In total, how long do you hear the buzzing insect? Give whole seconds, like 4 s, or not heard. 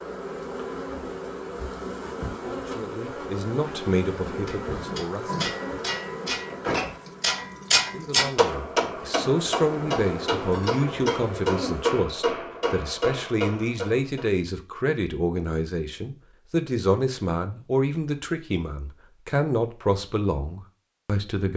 12 s.